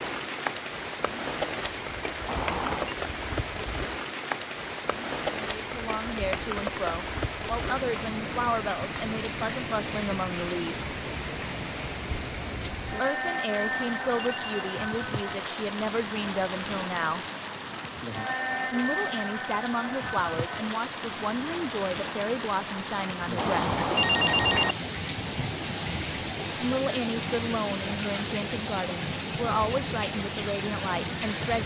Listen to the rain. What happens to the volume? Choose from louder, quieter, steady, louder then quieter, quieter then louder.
steady.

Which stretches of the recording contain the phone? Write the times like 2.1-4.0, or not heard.
2.2-3.0, 13.8-14.7, 23.4-24.8.